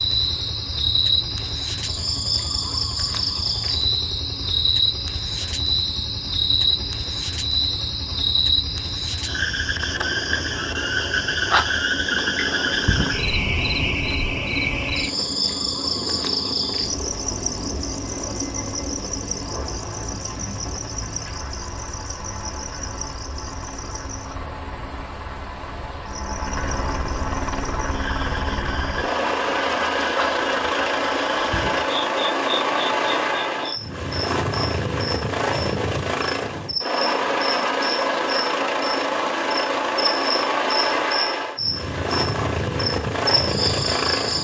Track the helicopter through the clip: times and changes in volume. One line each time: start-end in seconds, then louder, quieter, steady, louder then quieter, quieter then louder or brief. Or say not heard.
0.0-44.4 louder.